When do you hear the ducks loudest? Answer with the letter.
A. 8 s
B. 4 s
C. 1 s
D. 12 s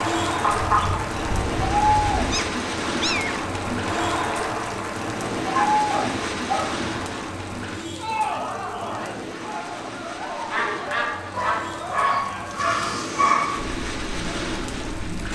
C.